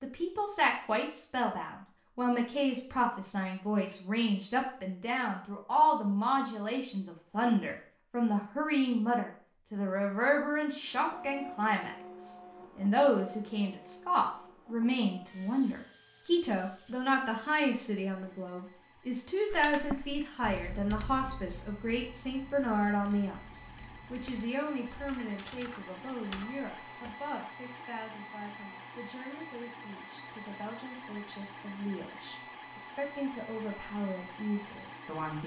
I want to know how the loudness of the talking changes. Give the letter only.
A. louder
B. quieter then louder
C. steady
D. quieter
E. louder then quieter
D.